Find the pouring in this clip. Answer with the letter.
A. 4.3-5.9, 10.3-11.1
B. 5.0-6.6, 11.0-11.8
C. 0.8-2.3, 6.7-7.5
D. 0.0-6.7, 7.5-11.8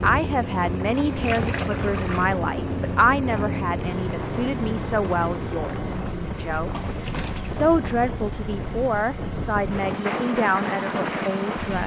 C.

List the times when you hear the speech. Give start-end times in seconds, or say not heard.
0.0-6.7, 7.5-11.8.